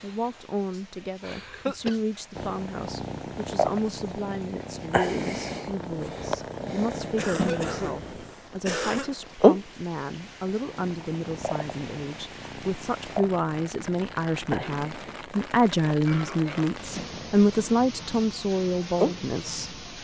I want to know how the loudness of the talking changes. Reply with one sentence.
The volume of the talking goes up.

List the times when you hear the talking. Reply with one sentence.
The talking can be heard from 0.0 to 19.8 s.